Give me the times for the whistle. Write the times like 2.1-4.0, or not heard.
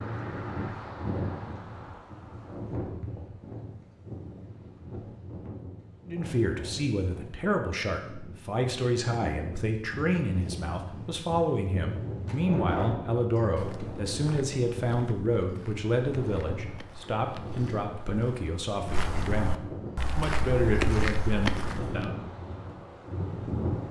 not heard.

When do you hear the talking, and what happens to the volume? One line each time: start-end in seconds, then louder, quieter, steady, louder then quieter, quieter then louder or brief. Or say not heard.
6.0-22.1 steady.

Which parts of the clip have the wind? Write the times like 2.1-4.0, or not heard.
0.0-23.8.